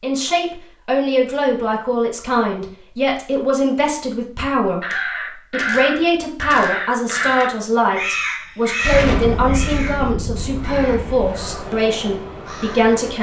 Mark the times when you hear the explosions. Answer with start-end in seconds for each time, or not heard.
8.8-11.3.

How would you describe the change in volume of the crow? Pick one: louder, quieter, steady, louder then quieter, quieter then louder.
quieter.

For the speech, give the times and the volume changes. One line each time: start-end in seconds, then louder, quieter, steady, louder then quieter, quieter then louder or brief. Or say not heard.
0.0-13.1 steady.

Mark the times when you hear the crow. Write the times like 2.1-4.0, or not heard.
4.8-13.1.